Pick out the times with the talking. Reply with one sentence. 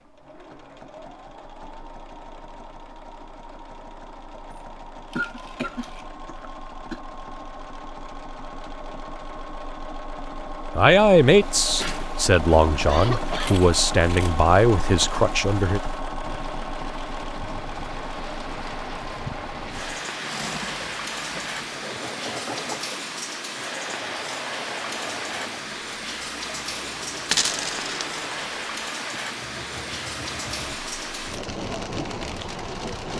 The talking can be heard from 10.8 to 15.8 s.